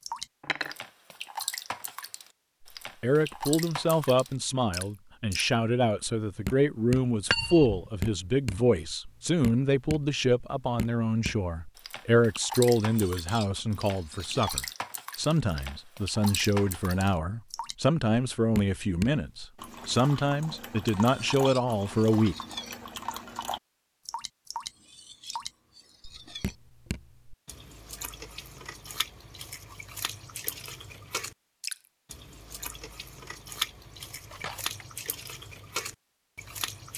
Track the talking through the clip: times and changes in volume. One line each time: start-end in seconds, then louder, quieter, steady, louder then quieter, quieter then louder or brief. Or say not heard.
3.0-22.4 steady.